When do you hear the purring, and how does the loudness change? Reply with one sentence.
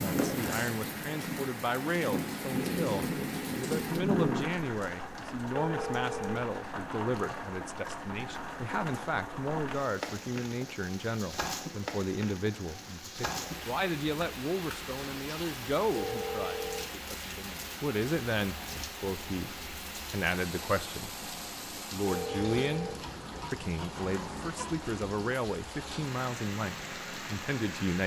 You can hear the purring from 0.0 to 4.7 s, getting louder.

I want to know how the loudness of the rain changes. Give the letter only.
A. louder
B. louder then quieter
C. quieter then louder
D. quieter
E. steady
E.